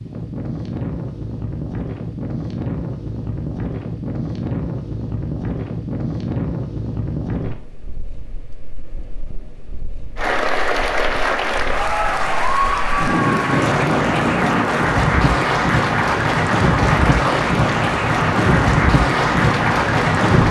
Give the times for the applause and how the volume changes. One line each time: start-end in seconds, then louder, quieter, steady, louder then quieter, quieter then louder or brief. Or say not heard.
10.2-20.4 steady.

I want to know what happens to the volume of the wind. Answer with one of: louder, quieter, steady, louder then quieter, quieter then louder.
quieter then louder.